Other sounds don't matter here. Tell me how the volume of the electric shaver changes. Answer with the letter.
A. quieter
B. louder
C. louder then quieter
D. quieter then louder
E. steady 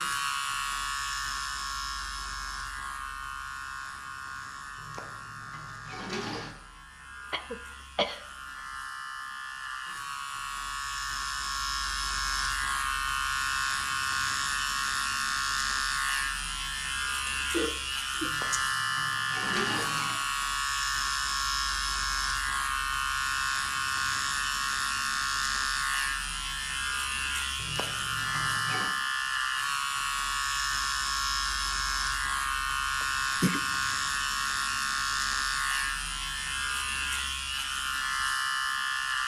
B.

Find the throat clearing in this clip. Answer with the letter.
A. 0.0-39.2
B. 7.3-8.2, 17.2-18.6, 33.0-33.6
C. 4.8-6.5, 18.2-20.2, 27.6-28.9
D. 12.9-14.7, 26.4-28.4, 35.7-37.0
B.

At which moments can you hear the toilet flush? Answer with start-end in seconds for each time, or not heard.
4.8-6.5, 18.2-20.2, 27.6-28.9.